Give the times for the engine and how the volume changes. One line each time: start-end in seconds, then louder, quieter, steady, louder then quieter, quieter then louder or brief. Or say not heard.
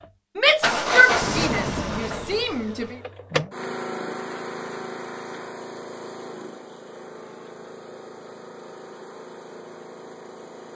0.0-10.7 quieter.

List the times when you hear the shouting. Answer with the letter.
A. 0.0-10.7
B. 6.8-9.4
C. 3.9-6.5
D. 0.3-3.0
D.